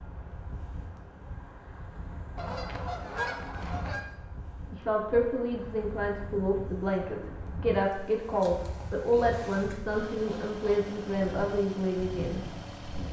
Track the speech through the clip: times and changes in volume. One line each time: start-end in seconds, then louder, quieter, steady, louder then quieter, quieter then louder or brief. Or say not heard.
4.7-12.3 steady.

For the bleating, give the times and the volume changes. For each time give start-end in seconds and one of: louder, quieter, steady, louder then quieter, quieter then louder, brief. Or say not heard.
not heard.